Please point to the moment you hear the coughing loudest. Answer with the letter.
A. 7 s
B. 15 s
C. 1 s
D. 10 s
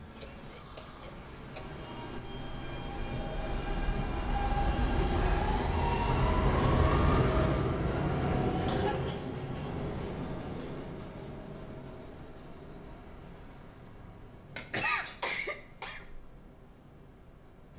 B.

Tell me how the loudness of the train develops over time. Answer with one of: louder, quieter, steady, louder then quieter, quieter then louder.
louder then quieter.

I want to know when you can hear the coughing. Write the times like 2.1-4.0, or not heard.
0.1-1.6, 8.7-9.4, 14.6-16.1.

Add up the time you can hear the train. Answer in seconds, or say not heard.
18 s.